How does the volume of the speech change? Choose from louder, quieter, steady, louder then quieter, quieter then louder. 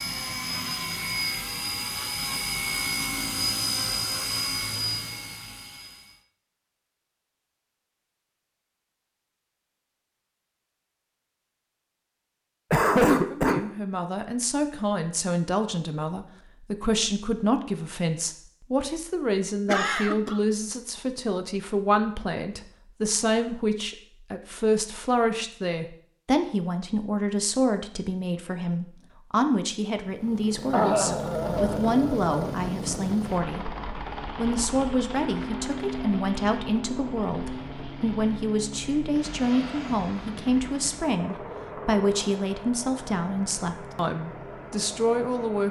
steady.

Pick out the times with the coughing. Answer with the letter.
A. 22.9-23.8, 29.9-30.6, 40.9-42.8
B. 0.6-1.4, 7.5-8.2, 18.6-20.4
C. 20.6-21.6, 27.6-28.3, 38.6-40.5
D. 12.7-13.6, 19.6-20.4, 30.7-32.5
D.